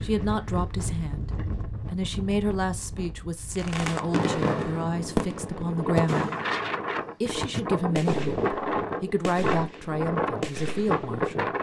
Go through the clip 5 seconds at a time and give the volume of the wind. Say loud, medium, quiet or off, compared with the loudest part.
medium, loud, loud.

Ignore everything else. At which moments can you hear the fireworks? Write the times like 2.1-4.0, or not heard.
3.5-11.3.